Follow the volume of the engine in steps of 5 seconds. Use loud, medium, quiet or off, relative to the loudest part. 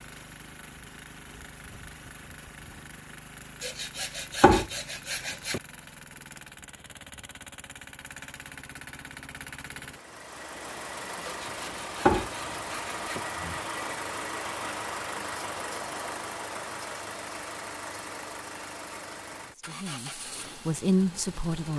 medium, medium, loud, loud, medium.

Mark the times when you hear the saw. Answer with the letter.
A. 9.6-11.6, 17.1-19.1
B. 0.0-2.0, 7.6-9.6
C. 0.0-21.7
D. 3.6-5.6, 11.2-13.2
D.